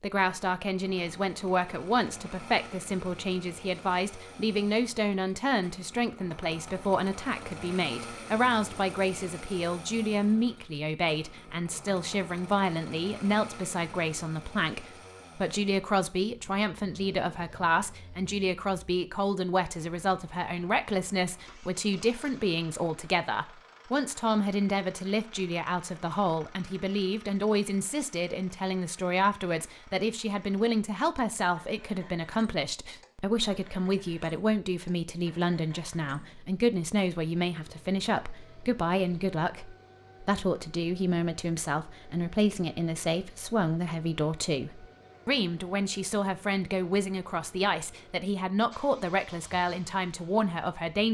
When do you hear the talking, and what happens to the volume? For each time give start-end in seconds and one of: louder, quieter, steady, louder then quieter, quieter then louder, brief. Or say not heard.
0.0-51.0 steady.